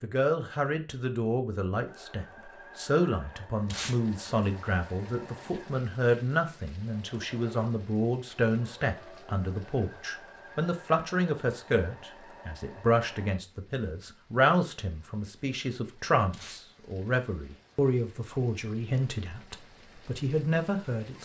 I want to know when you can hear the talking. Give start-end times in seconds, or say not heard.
0.0-21.1.